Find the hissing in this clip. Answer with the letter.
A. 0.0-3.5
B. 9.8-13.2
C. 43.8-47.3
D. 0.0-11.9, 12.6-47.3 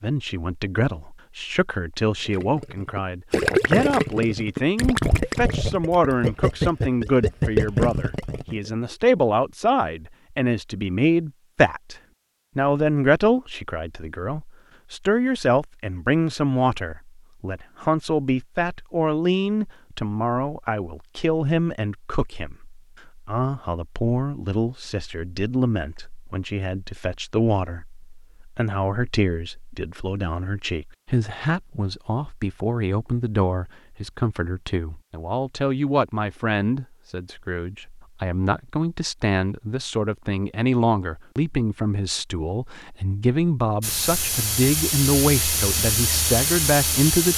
C.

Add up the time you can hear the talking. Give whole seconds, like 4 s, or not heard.
47 s.